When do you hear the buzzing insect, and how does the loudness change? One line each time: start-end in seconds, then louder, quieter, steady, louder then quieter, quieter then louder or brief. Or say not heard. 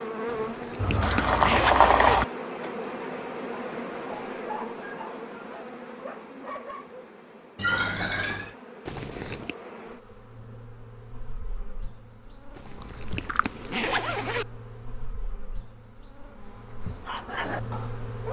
0.0-18.2 quieter.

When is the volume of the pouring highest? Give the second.
2 s.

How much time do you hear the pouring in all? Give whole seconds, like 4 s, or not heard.
3 s.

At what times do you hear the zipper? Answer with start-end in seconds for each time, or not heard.
0.2-2.2, 8.8-9.6, 12.6-14.4.